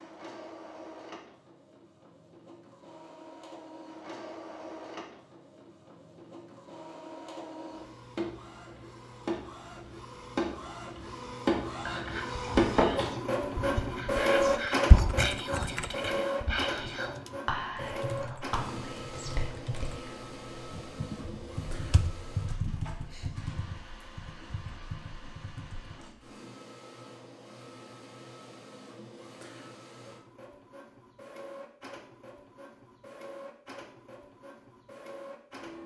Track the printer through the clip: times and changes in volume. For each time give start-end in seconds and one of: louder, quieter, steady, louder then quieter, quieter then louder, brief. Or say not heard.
0.0-35.8 louder then quieter.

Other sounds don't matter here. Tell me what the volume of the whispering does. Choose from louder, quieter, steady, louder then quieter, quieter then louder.
louder then quieter.